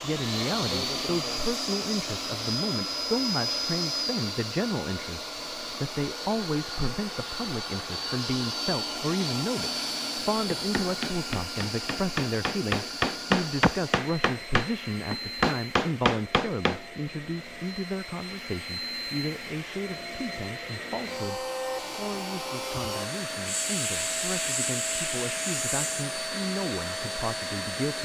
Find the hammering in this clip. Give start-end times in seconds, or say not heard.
10.5-16.8.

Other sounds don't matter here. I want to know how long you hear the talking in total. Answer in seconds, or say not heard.
28 s.